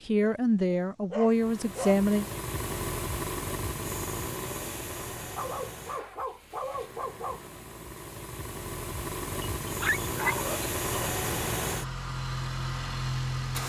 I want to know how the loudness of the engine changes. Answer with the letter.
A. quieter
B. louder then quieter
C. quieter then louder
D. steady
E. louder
C.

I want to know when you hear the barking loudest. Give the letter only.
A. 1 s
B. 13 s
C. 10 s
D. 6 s
C.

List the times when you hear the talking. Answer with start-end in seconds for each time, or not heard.
0.1-2.2.